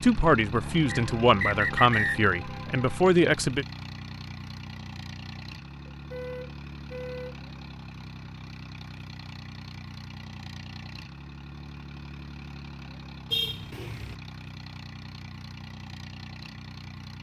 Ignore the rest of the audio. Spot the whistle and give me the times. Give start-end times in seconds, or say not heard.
0.9-2.2.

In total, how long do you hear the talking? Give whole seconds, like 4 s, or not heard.
4 s.